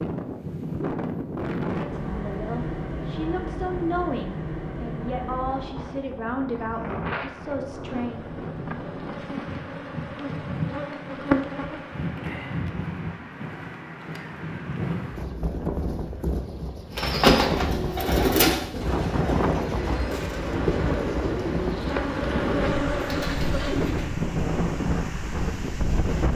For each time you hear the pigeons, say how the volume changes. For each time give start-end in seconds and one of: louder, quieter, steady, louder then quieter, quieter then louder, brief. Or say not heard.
16.9-24.1 quieter.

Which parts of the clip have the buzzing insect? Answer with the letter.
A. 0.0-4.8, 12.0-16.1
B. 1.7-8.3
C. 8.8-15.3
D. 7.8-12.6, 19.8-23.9
D.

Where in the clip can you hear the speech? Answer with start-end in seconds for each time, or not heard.
1.7-8.3.